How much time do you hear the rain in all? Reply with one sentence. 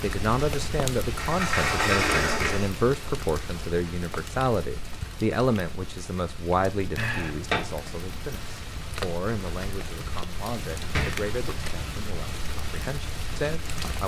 The rain can be heard for 14 seconds in total.